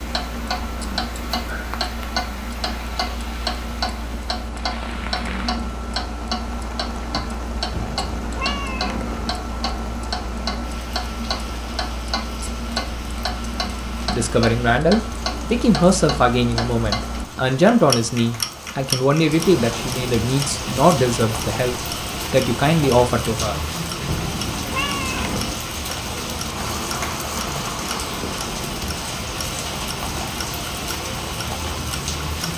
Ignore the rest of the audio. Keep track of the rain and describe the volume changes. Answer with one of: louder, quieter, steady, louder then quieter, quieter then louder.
louder.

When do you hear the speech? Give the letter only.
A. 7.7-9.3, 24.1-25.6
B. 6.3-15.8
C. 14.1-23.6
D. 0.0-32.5
C.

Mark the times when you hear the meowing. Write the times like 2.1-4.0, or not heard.
7.7-9.3, 24.1-25.6.